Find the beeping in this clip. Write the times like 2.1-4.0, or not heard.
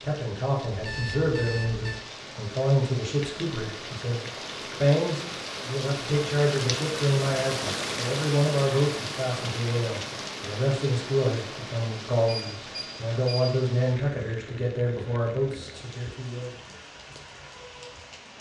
0.7-2.0, 12.2-13.6.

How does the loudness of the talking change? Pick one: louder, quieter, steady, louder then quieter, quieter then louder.
steady.